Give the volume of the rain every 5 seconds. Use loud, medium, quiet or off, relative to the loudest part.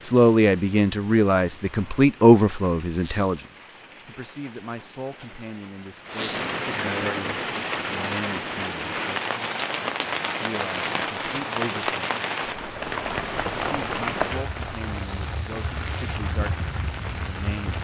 quiet, loud, loud, medium.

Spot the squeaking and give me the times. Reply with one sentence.
The squeaking can be heard from 3.0 to 3.4 s, from 6.1 to 6.5 s and from 14.9 to 16.2 s.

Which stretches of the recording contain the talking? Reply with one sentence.
The talking can be heard from 0.1 to 8.8 s, from 10.4 to 12.1 s and from 13.5 to 17.7 s.